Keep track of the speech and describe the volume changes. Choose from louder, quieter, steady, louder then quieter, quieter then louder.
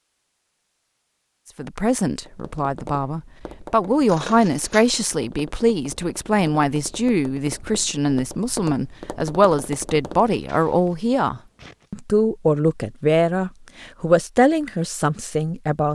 steady.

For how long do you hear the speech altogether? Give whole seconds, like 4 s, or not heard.
14 s.